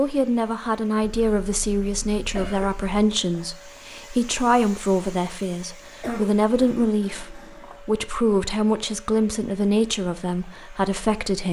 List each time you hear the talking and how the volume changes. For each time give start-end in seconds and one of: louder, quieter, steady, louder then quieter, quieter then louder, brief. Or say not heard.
0.0-11.4 steady.